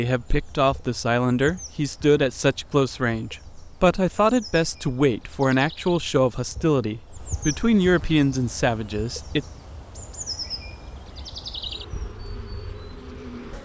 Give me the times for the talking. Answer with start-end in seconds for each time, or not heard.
0.0-9.4.